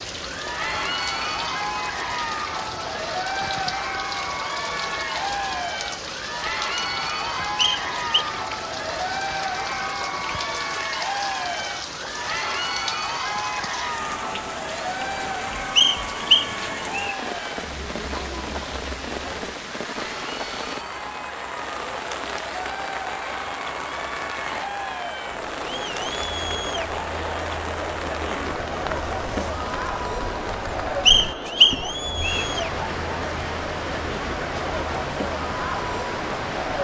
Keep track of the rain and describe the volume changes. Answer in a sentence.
The volume of the rain stays about the same.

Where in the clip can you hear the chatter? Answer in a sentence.
You can hear the chatter from 0.1 to 36.8 s.